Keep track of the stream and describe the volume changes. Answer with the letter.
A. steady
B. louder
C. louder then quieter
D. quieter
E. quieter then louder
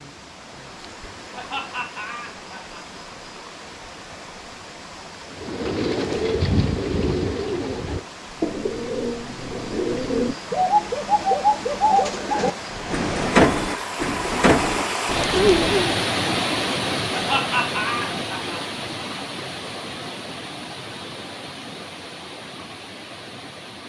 C.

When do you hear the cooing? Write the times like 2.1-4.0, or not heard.
5.3-16.1.